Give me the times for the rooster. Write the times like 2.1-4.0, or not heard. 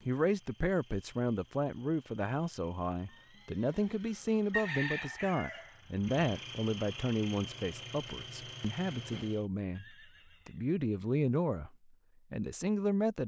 4.5-6.2.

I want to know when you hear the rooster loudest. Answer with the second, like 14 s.
5 s.